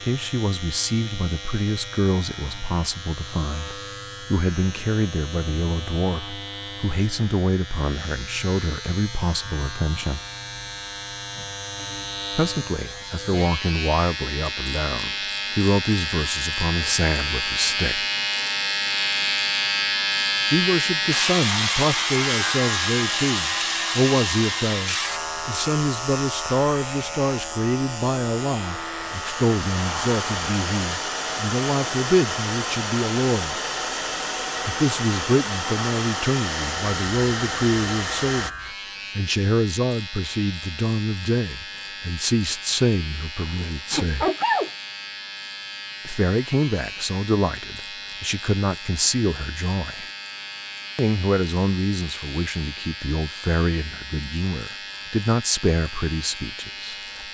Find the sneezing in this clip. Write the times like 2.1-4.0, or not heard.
43.4-44.7.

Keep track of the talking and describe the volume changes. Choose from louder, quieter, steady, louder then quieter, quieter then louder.
steady.